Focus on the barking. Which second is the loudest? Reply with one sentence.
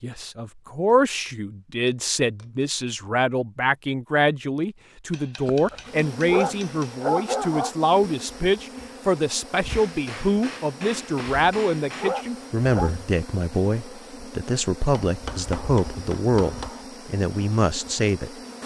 The loudest moment of the barking is at 7 seconds.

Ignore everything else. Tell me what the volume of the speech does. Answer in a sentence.
The loudness of the speech stays about the same.